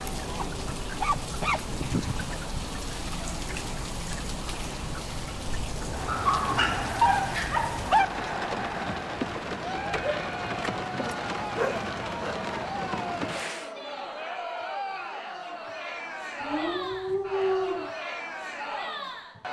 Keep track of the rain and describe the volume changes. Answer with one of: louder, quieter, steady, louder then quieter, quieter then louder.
steady.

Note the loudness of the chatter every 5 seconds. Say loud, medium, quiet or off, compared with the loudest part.
medium, loud, loud, loud.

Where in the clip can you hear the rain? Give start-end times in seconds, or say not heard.
0.0-13.8.